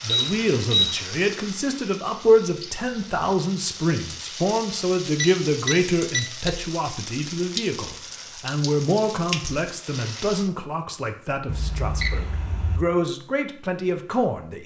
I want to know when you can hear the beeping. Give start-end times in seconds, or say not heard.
0.1-1.0, 5.2-6.2, 11.4-12.8.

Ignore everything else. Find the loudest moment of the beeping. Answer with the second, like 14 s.
1 s.